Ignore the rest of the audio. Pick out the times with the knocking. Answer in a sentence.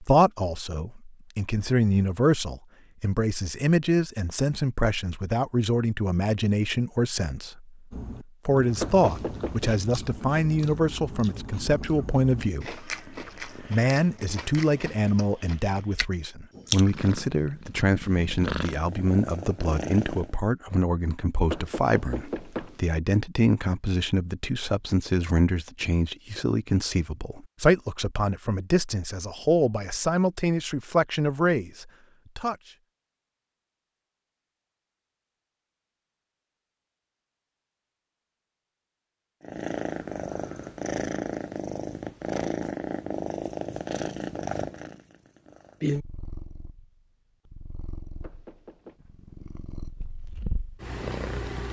You can hear the knocking from 8.8 to 9.7 s, from 21.5 to 22.8 s and from 48.2 to 49.0 s.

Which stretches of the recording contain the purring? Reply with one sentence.
You can hear the purring from 16.7 to 20.4 s and from 39.4 to 51.6 s.